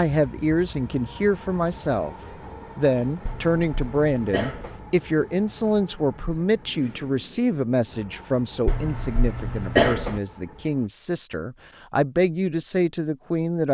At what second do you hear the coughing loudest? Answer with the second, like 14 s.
10 s.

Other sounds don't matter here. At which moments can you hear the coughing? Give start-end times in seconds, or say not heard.
3.2-4.8, 8.7-10.2.